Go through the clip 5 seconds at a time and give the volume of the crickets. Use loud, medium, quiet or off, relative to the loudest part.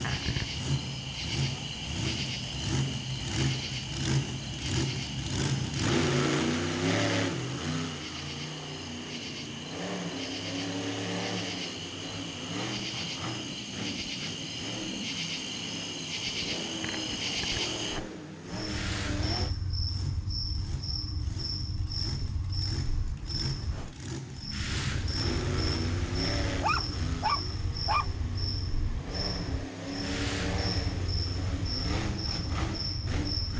loud, medium, loud, loud, loud, loud, loud.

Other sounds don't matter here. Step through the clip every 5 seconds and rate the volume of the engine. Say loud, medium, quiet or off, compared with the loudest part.
loud, loud, medium, medium, medium, medium, medium.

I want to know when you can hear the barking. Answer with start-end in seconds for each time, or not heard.
26.6-28.1.